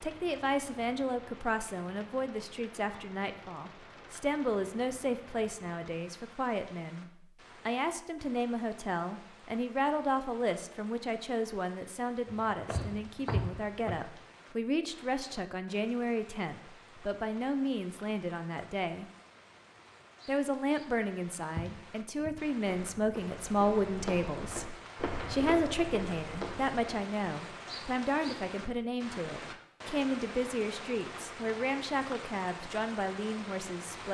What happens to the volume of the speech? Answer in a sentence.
The volume of the speech stays about the same.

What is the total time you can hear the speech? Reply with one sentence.
You can hear the speech for 33 seconds altogether.